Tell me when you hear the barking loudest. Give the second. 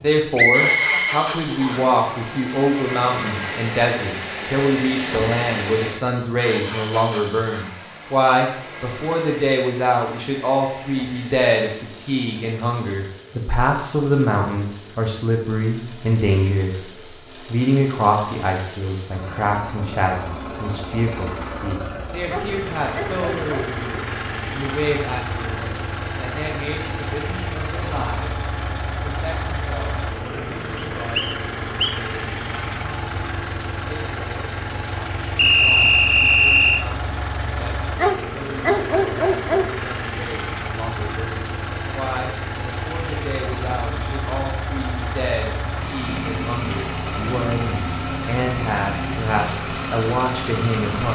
39 s.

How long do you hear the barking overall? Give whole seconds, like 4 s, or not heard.
3 s.